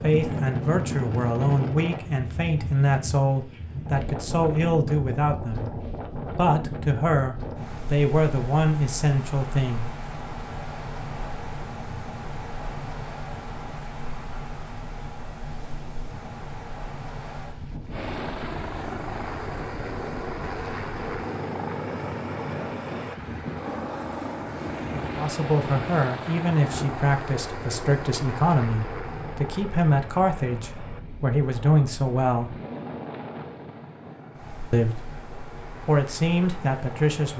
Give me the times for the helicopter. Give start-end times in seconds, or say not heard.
17.9-37.3.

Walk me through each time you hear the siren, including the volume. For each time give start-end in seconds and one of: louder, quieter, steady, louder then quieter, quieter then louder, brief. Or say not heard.
not heard.